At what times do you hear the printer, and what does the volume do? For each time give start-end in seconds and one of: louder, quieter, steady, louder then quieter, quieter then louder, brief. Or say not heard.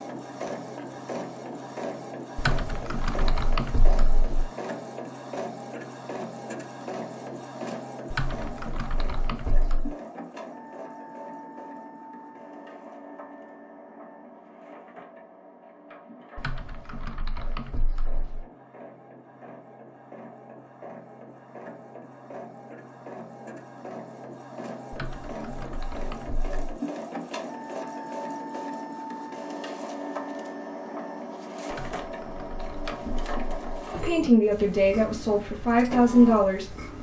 0.0-36.9 quieter then louder.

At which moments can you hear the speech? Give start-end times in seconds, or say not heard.
33.9-36.8.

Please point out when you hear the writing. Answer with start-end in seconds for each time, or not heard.
not heard.